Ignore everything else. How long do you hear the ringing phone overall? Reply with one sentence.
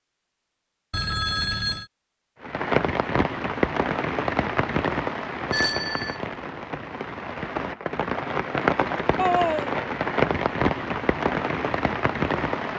The ringing phone can be heard for 2 seconds in total.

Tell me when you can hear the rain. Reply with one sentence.
The rain can be heard from 2.4 to 12.7 s.